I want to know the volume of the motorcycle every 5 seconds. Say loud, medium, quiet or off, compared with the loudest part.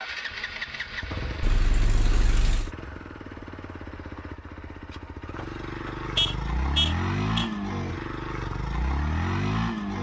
medium, loud.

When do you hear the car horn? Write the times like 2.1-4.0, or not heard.
1.4-2.7, 5.3-7.5.